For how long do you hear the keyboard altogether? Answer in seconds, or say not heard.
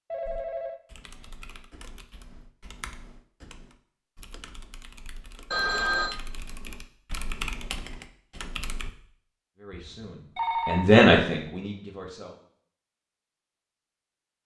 9 s.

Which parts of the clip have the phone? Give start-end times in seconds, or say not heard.
0.1-0.8, 5.5-6.2, 9.7-10.9.